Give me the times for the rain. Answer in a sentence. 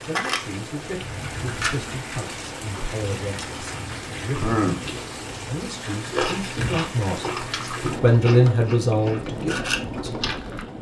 You can hear the rain from 0.0 to 10.7 s.